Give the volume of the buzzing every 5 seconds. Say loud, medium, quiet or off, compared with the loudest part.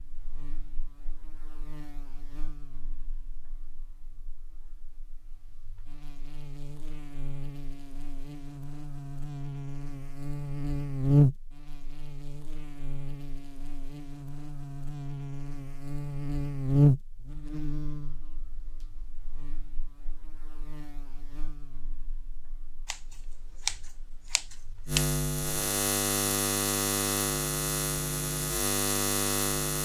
quiet, quiet, loud, loud, quiet, loud.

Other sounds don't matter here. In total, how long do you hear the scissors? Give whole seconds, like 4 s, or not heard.
2 s.